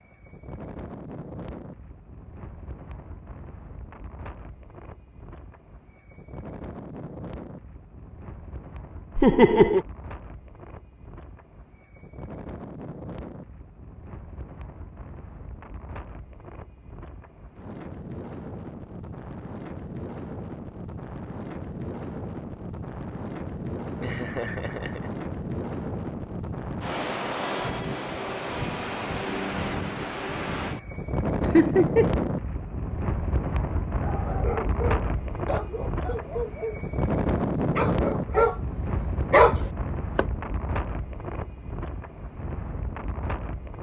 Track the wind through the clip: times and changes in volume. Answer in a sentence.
The wind can be heard from 0.0 to 43.7 s, getting louder.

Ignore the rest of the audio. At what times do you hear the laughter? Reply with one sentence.
The laughter can be heard from 9.2 to 9.8 s, from 24.0 to 25.1 s and from 31.5 to 32.1 s.